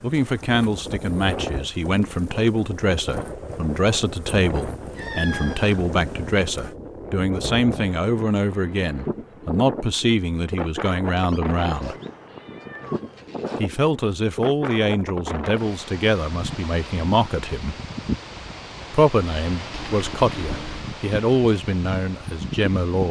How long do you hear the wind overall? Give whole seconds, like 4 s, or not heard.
23 s.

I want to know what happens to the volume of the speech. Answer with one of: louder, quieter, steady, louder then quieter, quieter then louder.
steady.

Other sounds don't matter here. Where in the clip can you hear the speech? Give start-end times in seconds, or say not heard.
0.0-11.9, 13.6-17.8, 18.9-23.0.